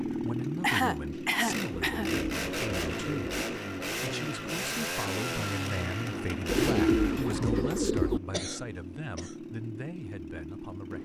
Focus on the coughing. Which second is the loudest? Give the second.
1 s.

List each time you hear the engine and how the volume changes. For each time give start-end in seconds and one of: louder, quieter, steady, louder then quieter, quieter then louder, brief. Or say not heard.
0.0-10.9 quieter.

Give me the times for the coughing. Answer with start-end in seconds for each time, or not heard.
0.6-2.1, 8.3-9.3.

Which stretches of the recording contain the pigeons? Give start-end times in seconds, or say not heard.
1.7-3.5, 6.5-8.2.